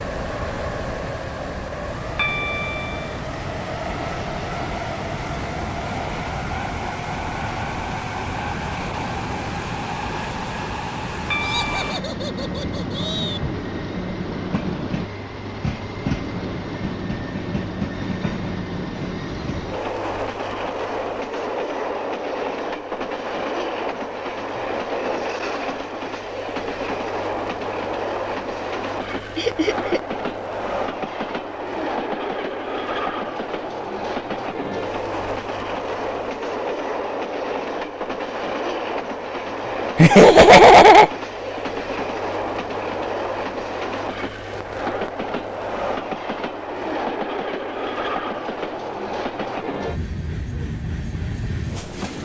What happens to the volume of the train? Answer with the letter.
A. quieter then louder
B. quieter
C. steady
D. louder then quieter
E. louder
C.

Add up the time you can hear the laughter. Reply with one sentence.
You can hear the laughter for 4 seconds altogether.